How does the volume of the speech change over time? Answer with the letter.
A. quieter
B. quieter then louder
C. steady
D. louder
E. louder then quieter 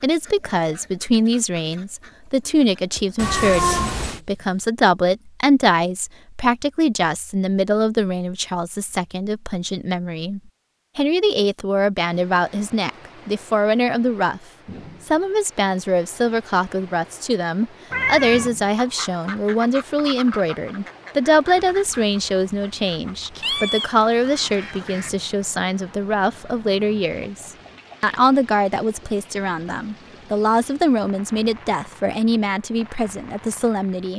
C.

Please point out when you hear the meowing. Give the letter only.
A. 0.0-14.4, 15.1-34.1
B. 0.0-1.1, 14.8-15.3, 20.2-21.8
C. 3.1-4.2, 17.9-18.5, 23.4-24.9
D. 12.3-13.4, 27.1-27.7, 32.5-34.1
C.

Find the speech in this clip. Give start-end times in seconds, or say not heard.
0.0-14.4, 15.1-34.1.